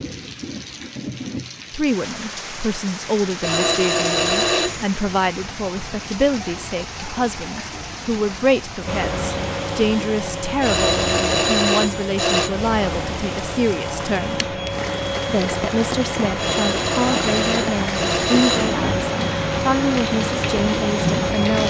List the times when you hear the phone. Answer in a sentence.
The phone can be heard from 3.4 to 4.8 s, from 10.6 to 12.5 s and from 16.4 to 18.8 s.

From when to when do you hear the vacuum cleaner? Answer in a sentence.
The vacuum cleaner can be heard from 8.8 to 21.6 s.